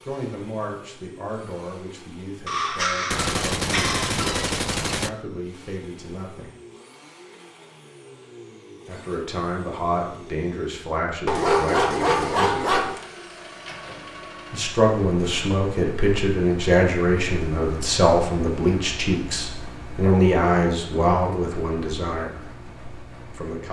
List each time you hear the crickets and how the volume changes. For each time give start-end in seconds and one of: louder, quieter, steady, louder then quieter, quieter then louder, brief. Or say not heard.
not heard.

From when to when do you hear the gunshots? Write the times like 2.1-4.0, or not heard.
3.1-5.1.